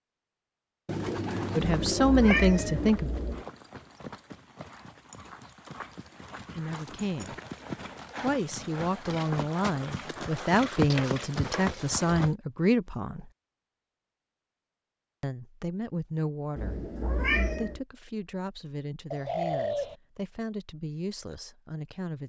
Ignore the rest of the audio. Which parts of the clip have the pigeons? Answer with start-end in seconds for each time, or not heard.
0.8-2.9, 10.3-11.8, 19.1-19.9.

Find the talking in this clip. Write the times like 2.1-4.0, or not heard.
1.6-3.1, 6.5-7.3, 8.2-13.3, 15.2-22.2.